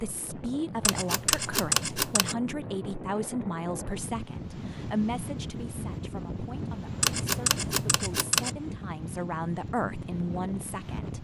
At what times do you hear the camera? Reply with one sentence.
You can hear the camera from 0.8 to 2.4 s and from 7.0 to 8.6 s.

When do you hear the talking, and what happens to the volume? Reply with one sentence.
You can hear the talking from 0.0 to 11.1 s, getting quieter then louder.